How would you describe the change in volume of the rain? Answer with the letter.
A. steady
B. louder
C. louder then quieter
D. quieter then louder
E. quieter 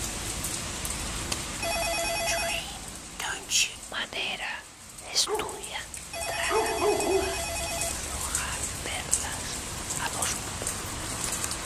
D.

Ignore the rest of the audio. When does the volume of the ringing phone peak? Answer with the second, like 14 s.
2 s.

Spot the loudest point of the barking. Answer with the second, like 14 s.
7 s.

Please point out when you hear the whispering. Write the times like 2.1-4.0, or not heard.
2.0-10.6.